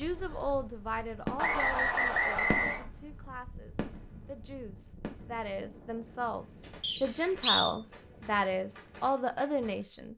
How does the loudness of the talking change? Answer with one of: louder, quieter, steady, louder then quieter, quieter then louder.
quieter then louder.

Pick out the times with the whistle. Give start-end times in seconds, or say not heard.
1.4-2.9, 6.8-7.8.